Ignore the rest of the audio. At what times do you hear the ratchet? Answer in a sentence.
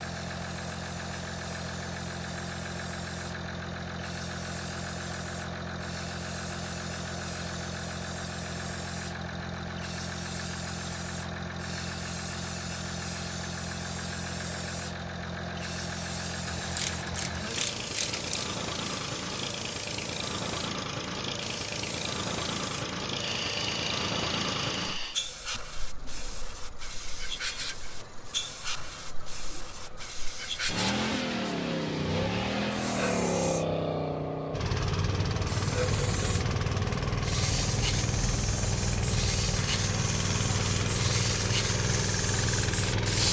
The ratchet can be heard from 16.8 to 18.5 s.